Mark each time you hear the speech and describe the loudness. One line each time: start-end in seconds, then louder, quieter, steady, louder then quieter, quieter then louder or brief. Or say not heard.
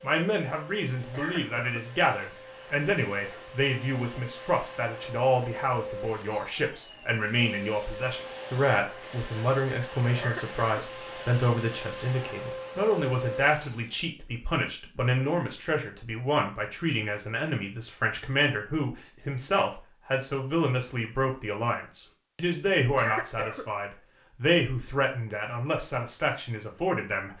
0.0-27.3 steady.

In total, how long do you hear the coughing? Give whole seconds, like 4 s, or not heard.
2 s.